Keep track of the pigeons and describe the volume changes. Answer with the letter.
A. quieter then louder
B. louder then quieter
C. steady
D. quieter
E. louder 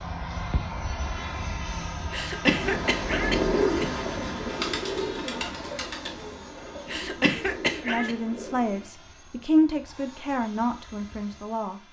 D.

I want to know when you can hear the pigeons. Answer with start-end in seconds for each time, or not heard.
2.4-8.9.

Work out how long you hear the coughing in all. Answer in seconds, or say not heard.
3 s.